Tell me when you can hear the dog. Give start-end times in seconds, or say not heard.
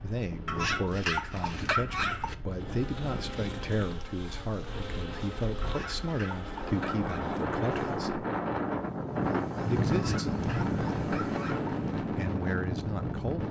0.5-2.4, 5.6-7.2, 9.9-11.7.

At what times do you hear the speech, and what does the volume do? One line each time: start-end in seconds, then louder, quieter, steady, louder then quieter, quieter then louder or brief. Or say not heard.
0.0-8.2 steady
9.7-10.4 brief
12.0-13.4 brief.